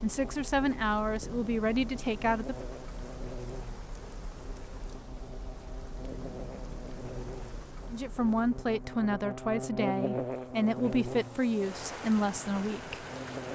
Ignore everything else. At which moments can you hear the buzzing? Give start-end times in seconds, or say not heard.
0.0-13.5.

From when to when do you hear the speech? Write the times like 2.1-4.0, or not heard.
0.0-2.5, 7.9-13.1.